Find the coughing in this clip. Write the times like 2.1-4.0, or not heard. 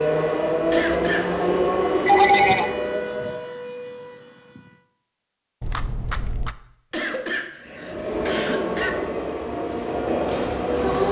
0.7-1.4, 6.9-8.9.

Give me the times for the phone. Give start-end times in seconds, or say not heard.
2.0-2.8, 5.6-6.5.